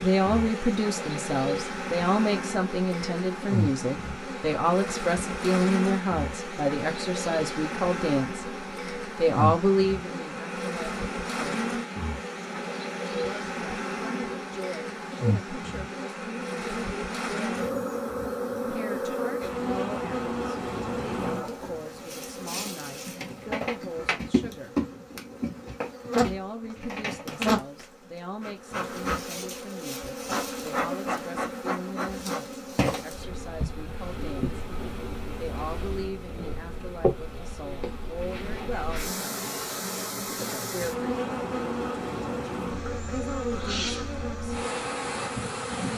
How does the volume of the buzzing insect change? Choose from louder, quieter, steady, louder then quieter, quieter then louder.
steady.